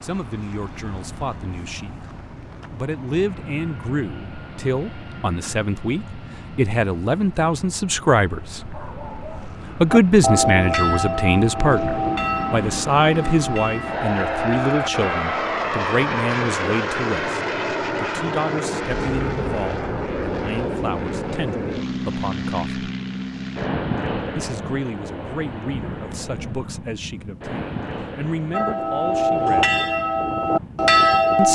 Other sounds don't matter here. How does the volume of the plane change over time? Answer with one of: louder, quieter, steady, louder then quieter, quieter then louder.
louder then quieter.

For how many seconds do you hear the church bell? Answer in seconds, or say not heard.
9 s.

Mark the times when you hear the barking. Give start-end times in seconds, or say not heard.
8.7-9.6.